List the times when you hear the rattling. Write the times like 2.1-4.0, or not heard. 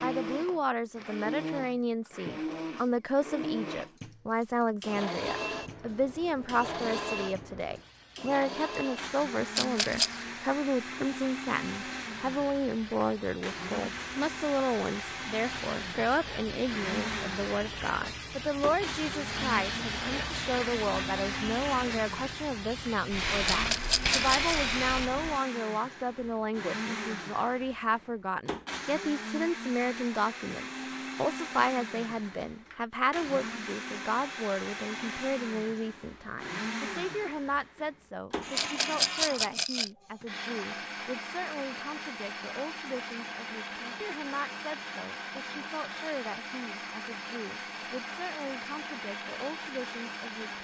9.6-10.2, 23.4-24.6, 38.5-39.9.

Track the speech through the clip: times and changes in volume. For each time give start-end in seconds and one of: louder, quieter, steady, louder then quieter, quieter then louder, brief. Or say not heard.
0.0-50.5 quieter.